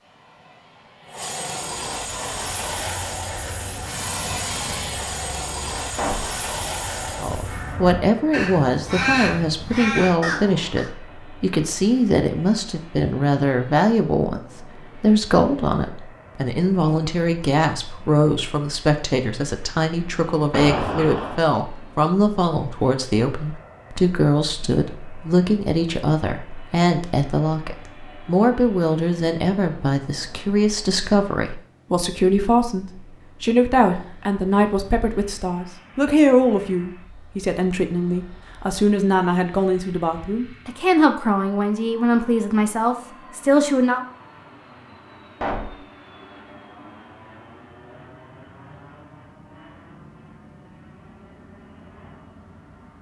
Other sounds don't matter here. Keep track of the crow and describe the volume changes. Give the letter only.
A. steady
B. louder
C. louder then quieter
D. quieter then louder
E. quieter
B.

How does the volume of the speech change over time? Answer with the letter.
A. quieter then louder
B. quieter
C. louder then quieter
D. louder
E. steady
E.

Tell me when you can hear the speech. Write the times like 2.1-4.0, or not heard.
7.2-44.0.